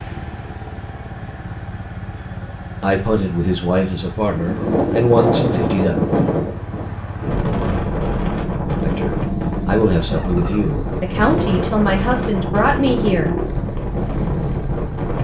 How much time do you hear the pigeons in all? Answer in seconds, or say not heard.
not heard.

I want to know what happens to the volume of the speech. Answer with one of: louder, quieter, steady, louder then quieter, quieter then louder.
steady.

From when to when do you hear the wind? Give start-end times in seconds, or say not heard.
4.3-15.1.